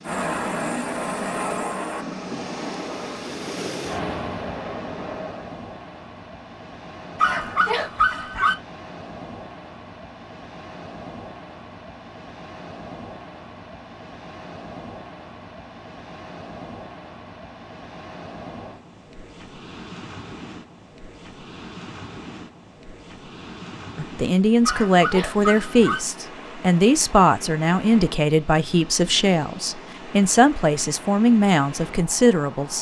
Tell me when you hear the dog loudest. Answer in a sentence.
The loudest moment of the dog is at 8 seconds.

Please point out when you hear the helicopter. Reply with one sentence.
The helicopter can be heard from 0.0 to 5.6 s.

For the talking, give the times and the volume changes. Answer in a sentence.
You can hear the talking from 23.9 to 32.7 s, at a steady volume.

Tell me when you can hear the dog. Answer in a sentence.
You can hear the dog from 7.2 to 8.6 s and from 24.6 to 26.0 s.